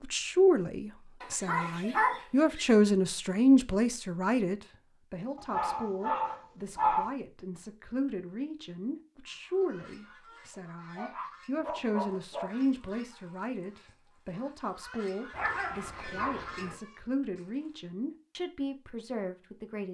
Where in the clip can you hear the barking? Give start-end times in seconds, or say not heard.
1.2-2.6, 5.3-7.1, 10.9-12.5, 15.3-16.8.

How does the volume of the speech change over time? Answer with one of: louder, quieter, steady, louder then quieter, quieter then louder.
quieter.